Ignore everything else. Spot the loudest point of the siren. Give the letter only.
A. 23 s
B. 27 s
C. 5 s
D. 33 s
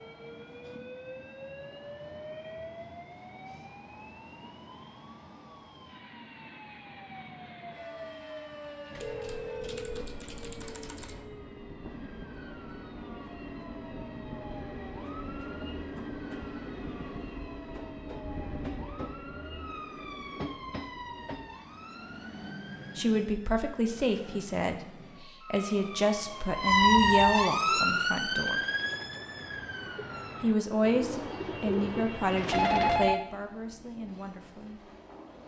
B.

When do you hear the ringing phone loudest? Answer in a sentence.
The loudest moment of the ringing phone is at 33 seconds.